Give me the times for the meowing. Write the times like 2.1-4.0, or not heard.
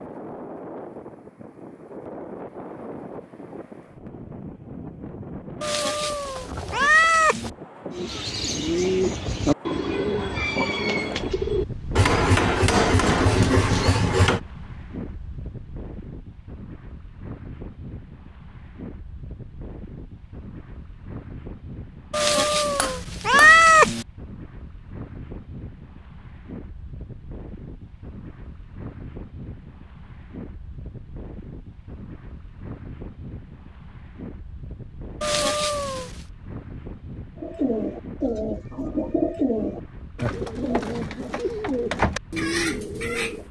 5.6-7.5, 22.1-24.1, 35.2-36.1.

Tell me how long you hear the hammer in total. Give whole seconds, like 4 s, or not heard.
3 s.